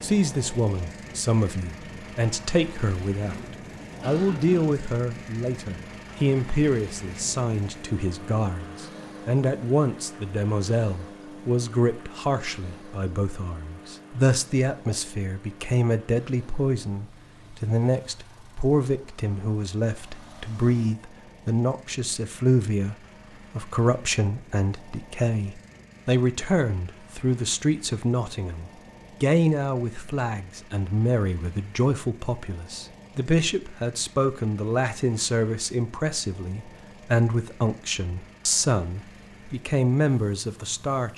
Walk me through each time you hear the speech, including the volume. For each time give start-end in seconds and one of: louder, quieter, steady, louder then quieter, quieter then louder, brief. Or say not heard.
0.0-41.1 steady.